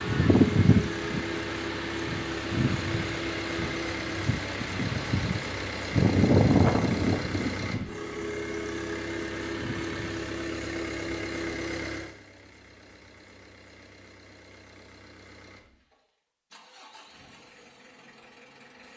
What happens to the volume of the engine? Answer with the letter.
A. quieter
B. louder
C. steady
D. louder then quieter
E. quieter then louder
A.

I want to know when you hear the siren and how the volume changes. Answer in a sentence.
The siren can't be heard in this clip.